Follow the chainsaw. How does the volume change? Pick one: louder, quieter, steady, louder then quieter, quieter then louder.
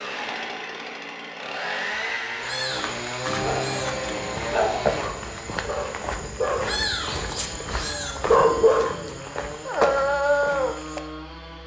quieter.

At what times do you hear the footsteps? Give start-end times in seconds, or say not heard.
2.6-11.0.